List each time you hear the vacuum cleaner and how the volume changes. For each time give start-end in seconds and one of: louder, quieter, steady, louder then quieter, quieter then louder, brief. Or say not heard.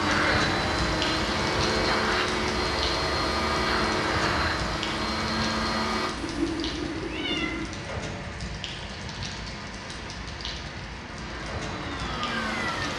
0.0-6.2 steady
11.2-12.9 brief.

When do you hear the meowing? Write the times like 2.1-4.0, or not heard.
6.2-7.8.